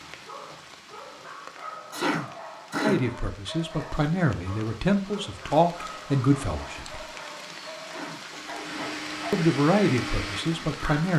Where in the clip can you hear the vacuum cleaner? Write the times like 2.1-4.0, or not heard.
8.3-10.8.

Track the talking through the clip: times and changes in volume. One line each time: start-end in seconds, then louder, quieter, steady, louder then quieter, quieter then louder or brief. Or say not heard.
2.8-7.0 louder
9.3-11.1 brief.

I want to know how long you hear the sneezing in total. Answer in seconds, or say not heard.
2 s.